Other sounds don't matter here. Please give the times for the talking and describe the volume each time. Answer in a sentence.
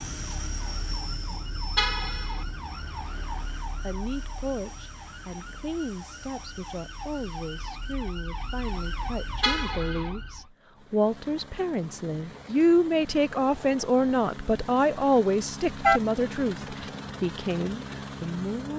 The talking can be heard from 3.8 to 18.7 s, getting louder then quieter.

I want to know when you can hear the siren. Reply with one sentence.
You can hear the siren from 0.0 to 10.4 s.